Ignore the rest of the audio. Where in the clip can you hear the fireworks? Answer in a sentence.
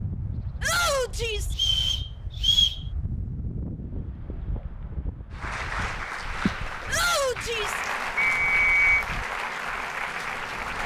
The fireworks can't be heard in this clip.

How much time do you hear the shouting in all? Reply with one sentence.
The shouting can be heard for 2 seconds in total.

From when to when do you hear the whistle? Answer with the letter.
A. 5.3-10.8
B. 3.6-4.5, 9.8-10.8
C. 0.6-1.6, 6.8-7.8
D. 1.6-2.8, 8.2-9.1
D.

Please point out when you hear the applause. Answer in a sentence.
You can hear the applause from 5.3 to 10.8 s.